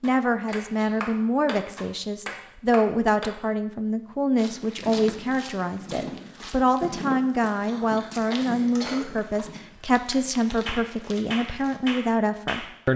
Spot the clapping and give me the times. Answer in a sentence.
The clapping can be heard from 0.0 to 3.3 s and from 10.7 to 12.9 s.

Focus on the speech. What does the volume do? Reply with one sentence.
The volume of the speech stays about the same.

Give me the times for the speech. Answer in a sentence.
The speech can be heard from 0.0 to 12.9 s.